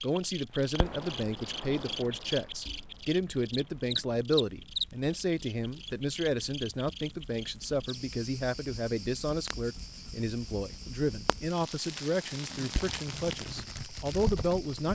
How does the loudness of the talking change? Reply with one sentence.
The volume of the talking stays about the same.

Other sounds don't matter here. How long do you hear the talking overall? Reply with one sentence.
The talking can be heard for 15 seconds in total.